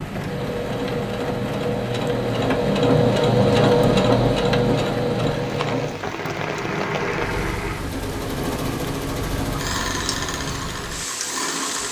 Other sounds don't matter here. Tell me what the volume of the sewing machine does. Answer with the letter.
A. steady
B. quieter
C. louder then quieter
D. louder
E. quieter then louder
C.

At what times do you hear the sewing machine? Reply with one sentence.
You can hear the sewing machine from 0.1 to 11.8 s.